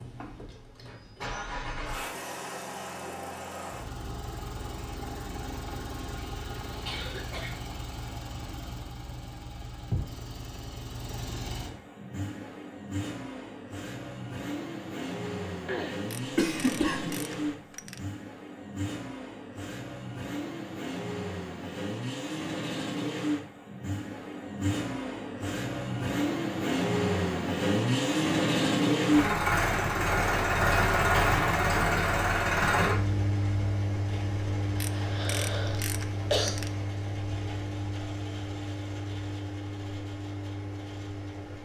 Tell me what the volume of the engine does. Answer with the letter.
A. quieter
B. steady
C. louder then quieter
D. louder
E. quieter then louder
C.